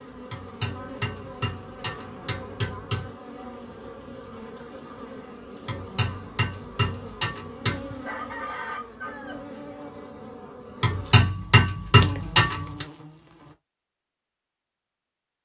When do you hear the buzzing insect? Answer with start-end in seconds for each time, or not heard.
0.0-13.6.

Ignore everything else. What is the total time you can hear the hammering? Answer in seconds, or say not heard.
7 s.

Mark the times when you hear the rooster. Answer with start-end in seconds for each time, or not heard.
7.8-9.4.